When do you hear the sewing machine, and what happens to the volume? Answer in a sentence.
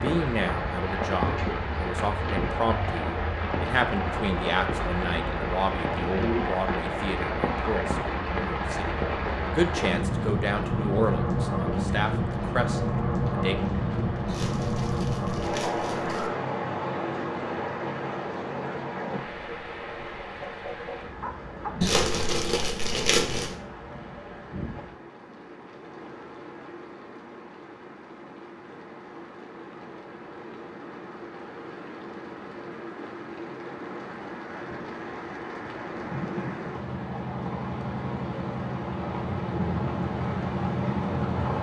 The sewing machine can't be heard in this clip.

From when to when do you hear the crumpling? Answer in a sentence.
You can hear the crumpling from 14.2 to 16.3 s and from 21.8 to 23.6 s.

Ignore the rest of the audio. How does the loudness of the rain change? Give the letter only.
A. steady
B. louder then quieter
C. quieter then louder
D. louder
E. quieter
C.